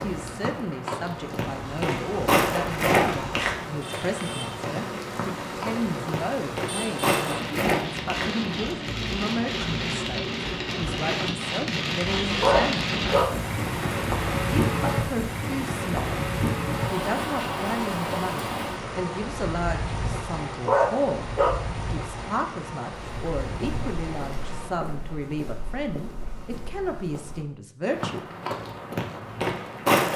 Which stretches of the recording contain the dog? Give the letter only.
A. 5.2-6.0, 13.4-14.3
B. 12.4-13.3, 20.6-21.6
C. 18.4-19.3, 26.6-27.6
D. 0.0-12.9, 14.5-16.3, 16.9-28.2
B.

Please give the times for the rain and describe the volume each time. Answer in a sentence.
You can hear the rain from 0.0 to 24.7 s, getting louder then quieter.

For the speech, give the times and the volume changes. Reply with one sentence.
You can hear the speech from 0.0 to 12.9 s, at a steady volume; briefly from 14.5 to 16.3 s; and from 16.9 to 28.2 s, at a steady volume.